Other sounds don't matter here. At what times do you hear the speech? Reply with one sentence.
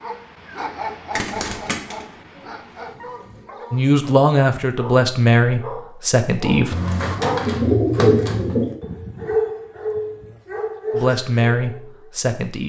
The speech can be heard from 3.7 to 6.8 s and from 10.9 to 12.6 s.